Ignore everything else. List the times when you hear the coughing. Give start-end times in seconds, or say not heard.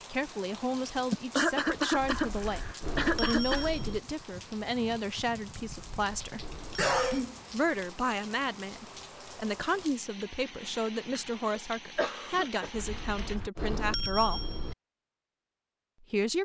1.1-3.9, 6.8-7.3, 11.6-13.4.